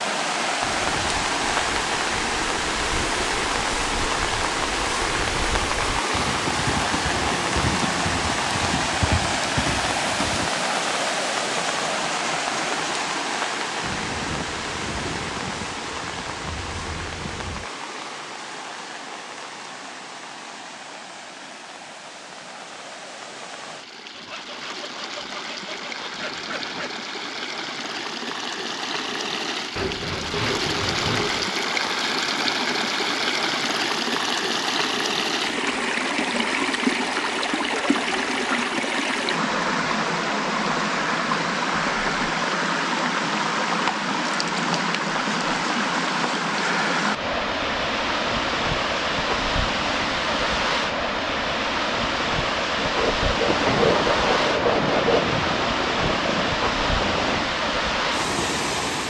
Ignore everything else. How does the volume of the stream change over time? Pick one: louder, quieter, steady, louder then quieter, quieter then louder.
quieter then louder.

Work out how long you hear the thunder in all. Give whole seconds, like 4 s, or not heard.
8 s.